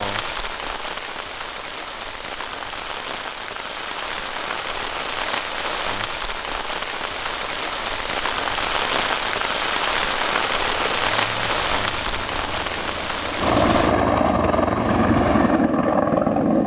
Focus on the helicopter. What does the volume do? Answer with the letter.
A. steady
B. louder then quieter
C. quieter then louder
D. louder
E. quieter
D.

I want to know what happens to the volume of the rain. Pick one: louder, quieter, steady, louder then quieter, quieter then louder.
louder.